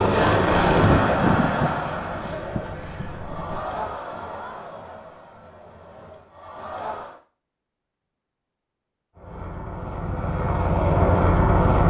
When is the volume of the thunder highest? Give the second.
1 s.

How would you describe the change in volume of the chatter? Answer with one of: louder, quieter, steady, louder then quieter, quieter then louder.
quieter.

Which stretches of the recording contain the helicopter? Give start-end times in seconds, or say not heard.
0.0-4.0, 9.2-11.8.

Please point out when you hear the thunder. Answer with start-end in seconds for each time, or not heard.
0.7-3.6.